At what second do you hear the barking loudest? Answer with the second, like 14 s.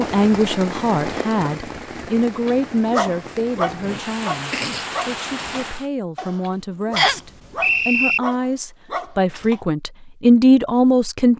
3 s.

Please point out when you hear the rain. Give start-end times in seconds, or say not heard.
0.0-5.9.